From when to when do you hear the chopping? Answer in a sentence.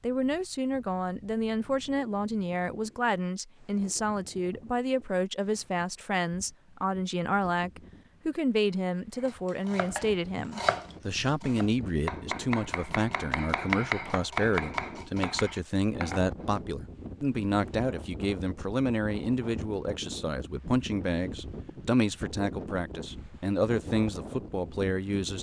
You can hear the chopping from 9.2 to 16.6 s.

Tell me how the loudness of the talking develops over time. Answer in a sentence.
The loudness of the talking stays about the same.